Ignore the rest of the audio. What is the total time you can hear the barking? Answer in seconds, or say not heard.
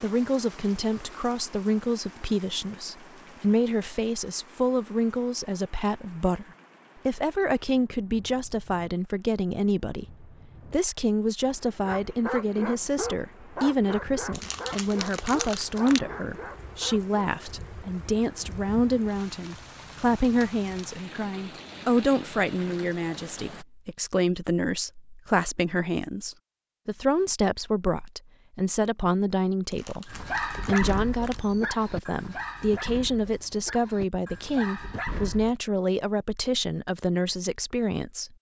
11 s.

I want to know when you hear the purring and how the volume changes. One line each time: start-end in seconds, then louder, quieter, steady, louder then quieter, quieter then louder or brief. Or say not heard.
not heard.